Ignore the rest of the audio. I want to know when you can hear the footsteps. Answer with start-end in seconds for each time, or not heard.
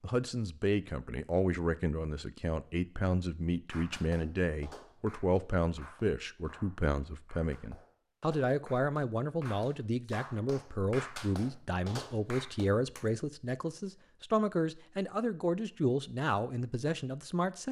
not heard.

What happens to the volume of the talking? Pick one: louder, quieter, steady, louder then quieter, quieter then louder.
steady.